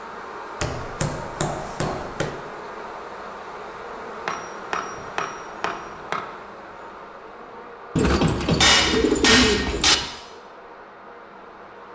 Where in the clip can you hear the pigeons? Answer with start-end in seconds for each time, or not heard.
8.0-9.9.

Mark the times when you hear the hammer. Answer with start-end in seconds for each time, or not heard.
0.6-2.4, 4.2-6.2, 8.6-10.1.